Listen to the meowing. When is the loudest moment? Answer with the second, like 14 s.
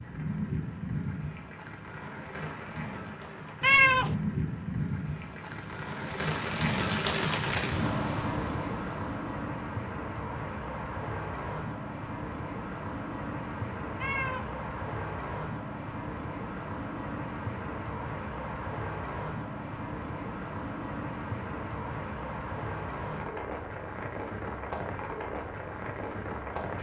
4 s.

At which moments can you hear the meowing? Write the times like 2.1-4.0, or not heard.
3.6-4.2, 14.0-14.6.